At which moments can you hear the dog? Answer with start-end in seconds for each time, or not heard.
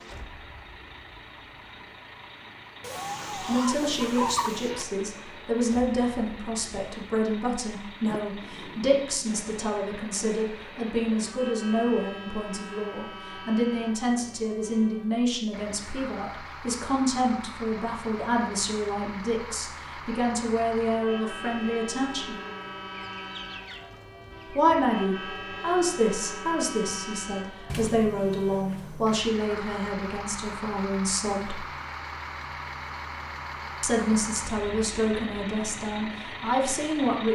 not heard.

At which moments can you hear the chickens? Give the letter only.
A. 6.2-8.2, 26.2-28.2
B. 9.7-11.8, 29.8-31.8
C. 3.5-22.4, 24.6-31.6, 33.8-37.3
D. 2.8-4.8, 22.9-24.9
D.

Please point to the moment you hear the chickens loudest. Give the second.
4 s.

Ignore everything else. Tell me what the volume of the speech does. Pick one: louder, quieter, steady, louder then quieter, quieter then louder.
steady.